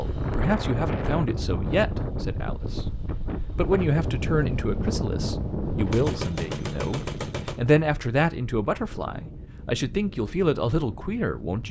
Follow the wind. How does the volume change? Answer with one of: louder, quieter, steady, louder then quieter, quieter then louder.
quieter.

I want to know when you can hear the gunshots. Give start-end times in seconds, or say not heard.
5.8-7.6.